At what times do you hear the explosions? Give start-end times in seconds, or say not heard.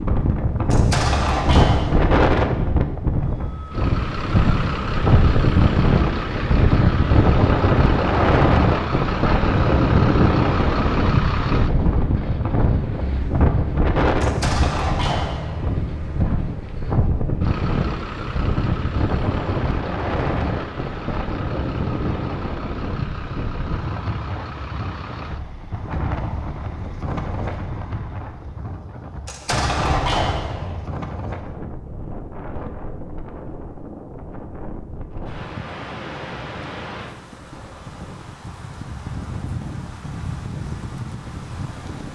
0.7-2.1, 14.2-15.8, 29.2-30.9.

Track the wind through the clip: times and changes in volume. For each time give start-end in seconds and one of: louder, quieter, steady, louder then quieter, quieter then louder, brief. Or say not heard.
0.0-42.1 quieter.